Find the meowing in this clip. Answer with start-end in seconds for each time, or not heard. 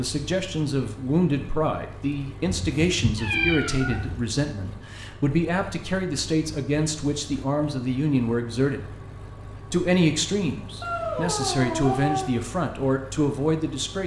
2.5-4.2, 10.8-12.3.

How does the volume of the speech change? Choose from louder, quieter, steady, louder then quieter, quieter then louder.
steady.